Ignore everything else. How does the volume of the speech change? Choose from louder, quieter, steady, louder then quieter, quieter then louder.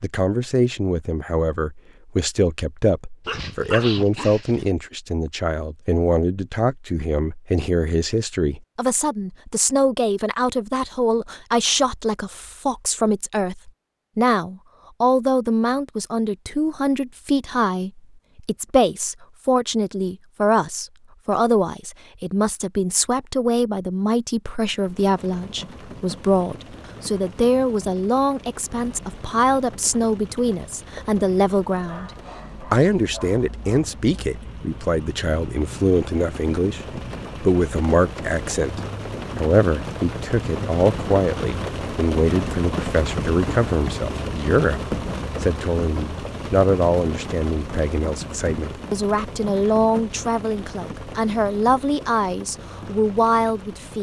steady.